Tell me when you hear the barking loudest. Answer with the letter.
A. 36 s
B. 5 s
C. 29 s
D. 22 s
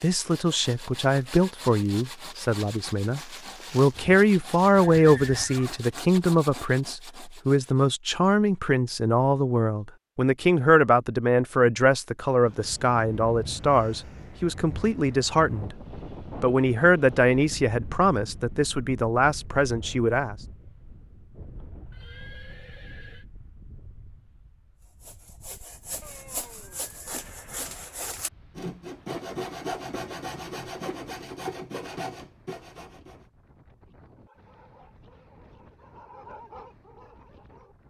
A.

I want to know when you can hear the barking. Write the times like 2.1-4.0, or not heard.
34.1-37.8.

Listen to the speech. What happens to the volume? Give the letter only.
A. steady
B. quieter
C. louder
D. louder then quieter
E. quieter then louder
A.